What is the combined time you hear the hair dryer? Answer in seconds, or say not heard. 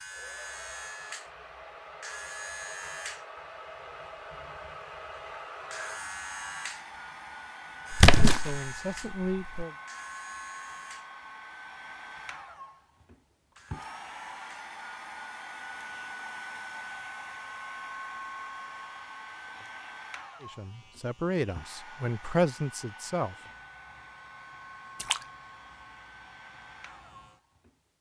28 s.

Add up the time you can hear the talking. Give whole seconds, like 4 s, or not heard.
5 s.